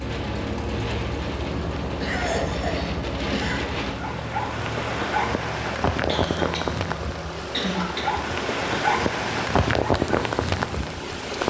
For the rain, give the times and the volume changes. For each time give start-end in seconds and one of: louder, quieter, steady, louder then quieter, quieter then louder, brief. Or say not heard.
0.0-11.4 louder.